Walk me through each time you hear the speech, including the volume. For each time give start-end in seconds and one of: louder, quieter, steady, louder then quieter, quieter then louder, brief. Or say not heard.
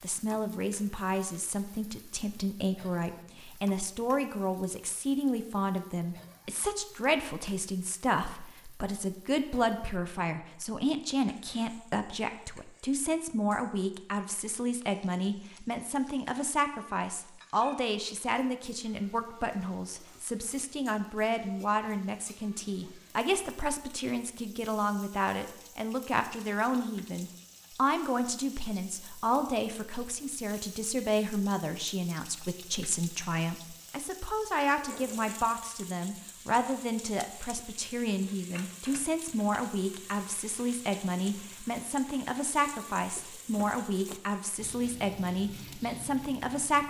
0.0-46.8 steady.